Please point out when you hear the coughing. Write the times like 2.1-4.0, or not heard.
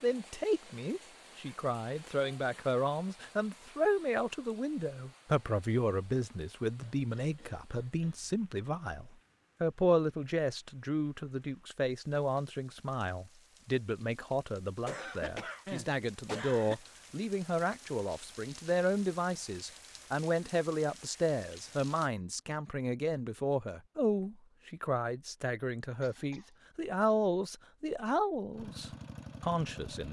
6.8-8.4, 14.8-16.8, 26.0-26.5.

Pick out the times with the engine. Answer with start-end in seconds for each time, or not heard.
28.5-30.0.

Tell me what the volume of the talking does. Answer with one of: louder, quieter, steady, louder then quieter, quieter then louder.
steady.